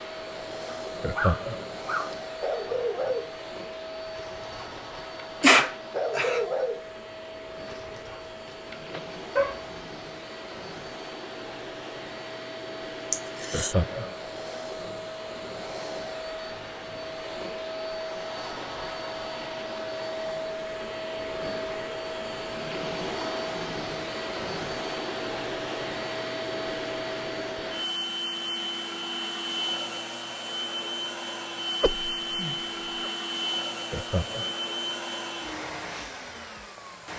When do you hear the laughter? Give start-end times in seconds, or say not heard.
1.0-1.6, 13.5-14.2, 33.9-34.5.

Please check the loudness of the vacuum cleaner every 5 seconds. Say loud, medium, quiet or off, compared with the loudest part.
medium, medium, medium, loud, loud, loud, loud, medium.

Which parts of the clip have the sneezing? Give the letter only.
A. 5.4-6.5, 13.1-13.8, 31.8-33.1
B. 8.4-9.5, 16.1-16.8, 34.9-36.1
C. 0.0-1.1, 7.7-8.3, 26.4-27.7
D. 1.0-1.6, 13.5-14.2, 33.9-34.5
A.